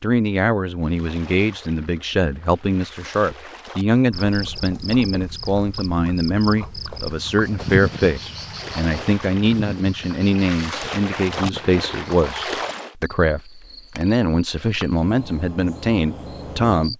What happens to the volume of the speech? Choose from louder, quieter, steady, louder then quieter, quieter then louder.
steady.